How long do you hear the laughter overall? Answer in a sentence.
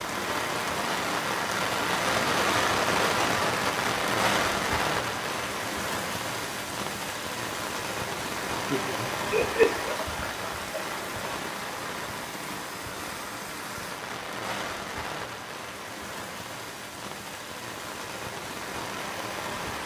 You can hear the laughter for 2 seconds altogether.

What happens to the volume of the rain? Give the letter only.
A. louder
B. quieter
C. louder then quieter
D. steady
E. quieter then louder
B.